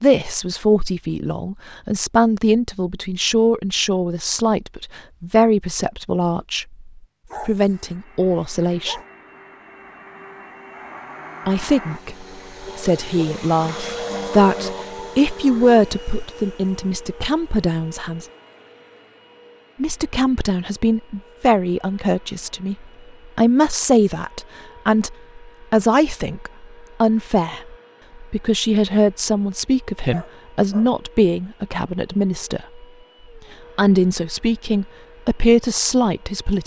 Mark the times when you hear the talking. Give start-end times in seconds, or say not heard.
0.0-9.0, 11.4-18.2, 19.8-22.8, 23.4-32.9, 33.8-36.6.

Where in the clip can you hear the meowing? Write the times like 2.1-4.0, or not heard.
not heard.